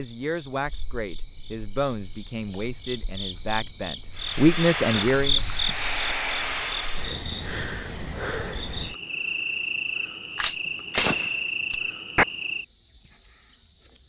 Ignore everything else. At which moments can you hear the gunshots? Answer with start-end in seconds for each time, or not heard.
10.3-12.2.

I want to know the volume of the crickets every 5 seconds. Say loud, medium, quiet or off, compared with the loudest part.
medium, loud, loud.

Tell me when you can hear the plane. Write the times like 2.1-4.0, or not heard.
4.1-7.2.